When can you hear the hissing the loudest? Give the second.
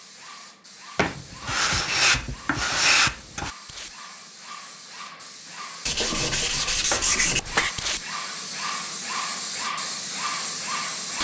11 s.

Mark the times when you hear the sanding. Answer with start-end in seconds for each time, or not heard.
0.9-3.5, 5.8-7.8.